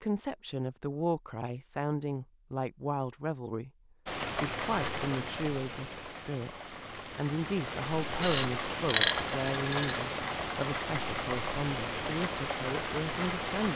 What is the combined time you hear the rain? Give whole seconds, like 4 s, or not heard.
10 s.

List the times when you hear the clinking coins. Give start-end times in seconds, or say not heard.
8.2-10.0.